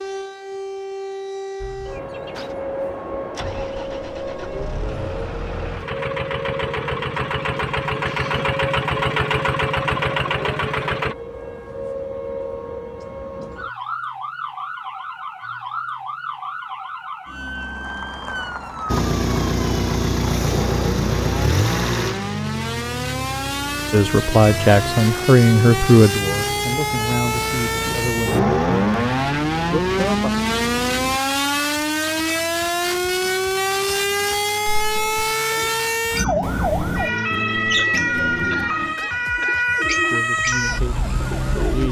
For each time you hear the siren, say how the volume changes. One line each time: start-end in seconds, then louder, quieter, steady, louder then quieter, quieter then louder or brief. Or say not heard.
0.0-41.8 louder.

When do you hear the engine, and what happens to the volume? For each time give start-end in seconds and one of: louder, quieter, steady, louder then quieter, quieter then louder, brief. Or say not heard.
1.6-11.2 louder
18.9-31.2 quieter.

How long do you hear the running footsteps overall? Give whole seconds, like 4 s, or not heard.
not heard.